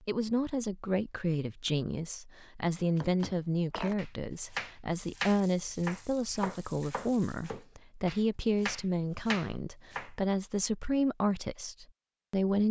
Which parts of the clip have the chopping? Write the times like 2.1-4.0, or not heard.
2.8-10.1.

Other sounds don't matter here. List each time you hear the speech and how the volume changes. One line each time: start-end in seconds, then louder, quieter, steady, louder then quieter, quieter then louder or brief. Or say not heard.
0.1-12.6 steady.